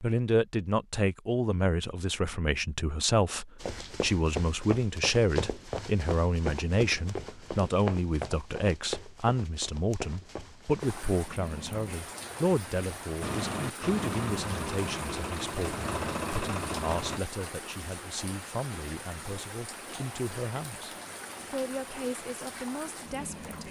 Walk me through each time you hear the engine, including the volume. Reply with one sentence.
The engine can be heard from 13.2 to 17.2 s, at a steady volume.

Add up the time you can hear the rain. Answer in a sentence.
The rain can be heard for 13 seconds in total.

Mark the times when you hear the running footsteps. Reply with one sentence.
You can hear the running footsteps from 3.6 to 11.1 s.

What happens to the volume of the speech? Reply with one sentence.
The volume of the speech goes down.